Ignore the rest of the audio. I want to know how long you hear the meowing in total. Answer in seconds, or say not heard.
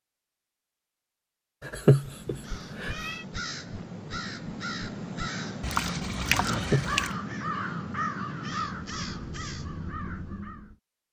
2 s.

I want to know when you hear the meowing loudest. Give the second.
2 s.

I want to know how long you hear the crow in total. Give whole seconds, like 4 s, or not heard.
9 s.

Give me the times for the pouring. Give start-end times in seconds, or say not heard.
5.6-7.2.